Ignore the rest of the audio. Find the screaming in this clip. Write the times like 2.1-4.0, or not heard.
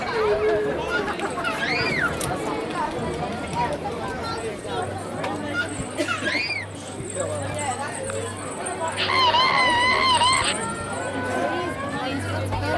0.8-2.3, 5.5-6.7, 8.9-10.6.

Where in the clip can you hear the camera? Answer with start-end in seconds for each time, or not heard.
not heard.